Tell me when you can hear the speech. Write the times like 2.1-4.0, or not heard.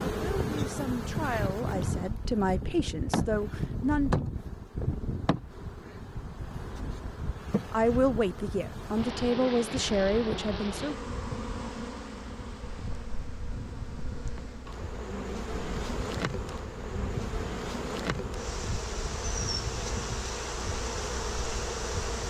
0.1-4.2, 7.7-10.9.